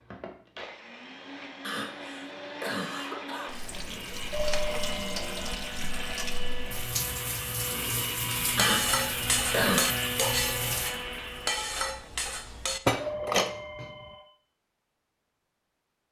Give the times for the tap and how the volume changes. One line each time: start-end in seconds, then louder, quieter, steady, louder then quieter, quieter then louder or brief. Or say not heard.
3.5-10.9 steady.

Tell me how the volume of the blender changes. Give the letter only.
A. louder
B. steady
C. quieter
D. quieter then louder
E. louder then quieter
A.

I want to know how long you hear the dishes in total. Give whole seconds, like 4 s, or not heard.
6 s.